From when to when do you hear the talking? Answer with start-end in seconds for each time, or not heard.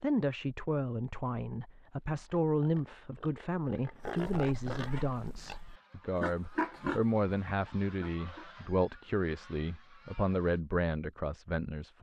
0.0-11.9.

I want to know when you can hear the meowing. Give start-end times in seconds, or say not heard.
not heard.